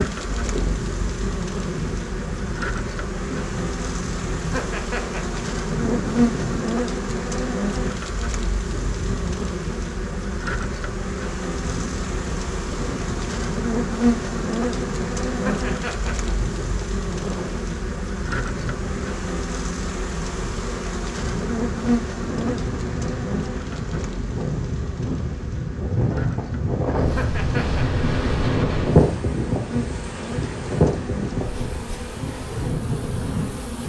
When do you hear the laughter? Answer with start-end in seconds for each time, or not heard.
4.5-5.4, 15.3-16.3, 27.1-28.0.